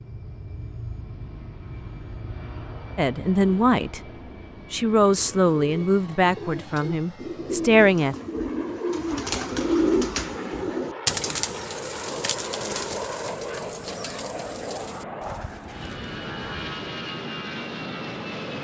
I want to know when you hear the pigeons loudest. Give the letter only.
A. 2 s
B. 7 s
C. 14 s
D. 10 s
D.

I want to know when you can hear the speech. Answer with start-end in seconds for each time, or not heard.
3.0-4.0, 4.7-8.2.